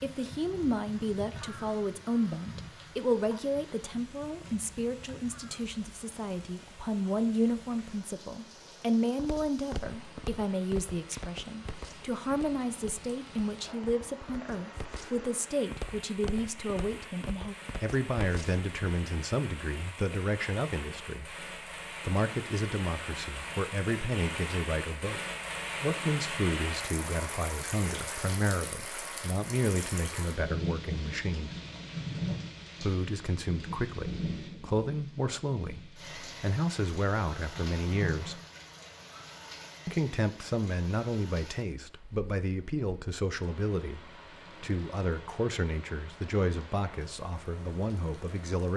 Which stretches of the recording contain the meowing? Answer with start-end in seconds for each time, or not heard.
37.5-38.5.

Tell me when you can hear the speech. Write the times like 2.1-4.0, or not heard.
0.0-21.4, 22.1-25.2, 25.8-31.6, 32.8-38.4, 39.9-48.7.